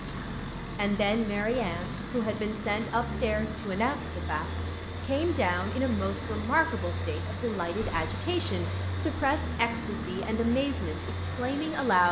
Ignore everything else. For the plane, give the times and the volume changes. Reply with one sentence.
The plane can be heard from 0.0 to 12.0 s, at a steady volume.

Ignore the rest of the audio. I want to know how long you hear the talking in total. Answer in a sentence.
The talking can be heard for 12 seconds in total.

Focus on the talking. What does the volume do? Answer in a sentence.
The loudness of the talking stays about the same.